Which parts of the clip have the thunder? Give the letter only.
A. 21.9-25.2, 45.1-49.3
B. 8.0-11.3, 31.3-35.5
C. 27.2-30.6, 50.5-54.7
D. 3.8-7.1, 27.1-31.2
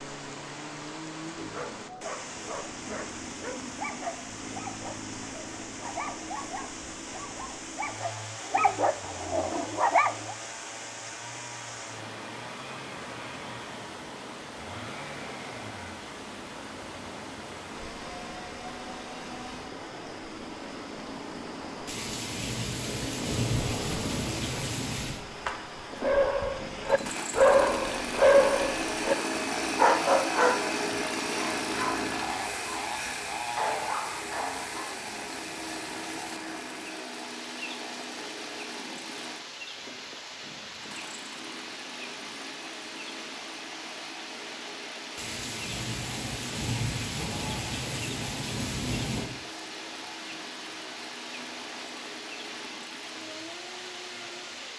A.